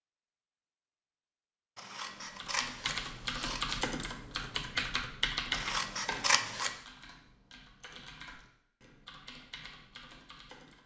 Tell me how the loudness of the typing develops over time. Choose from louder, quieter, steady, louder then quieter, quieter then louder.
quieter.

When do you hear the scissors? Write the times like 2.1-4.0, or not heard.
1.8-3.9, 5.5-6.8.